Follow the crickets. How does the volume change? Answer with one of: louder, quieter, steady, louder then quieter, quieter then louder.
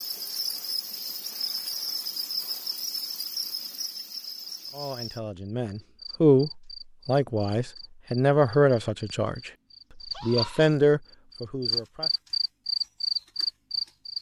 quieter then louder.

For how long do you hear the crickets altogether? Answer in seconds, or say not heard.
14 s.